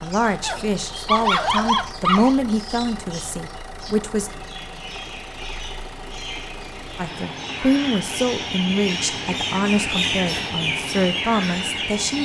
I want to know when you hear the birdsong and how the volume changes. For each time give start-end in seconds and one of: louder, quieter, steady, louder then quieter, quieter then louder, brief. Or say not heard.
0.0-12.1 louder.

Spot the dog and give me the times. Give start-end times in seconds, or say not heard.
0.4-2.4.